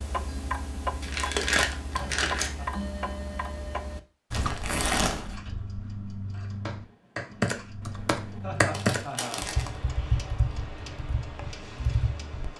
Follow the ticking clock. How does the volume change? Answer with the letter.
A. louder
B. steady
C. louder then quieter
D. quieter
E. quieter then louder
D.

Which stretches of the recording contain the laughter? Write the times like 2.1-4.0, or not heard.
1.9-2.7, 8.4-9.4.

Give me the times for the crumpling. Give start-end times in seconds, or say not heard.
1.0-2.5, 4.3-5.4, 8.7-9.7.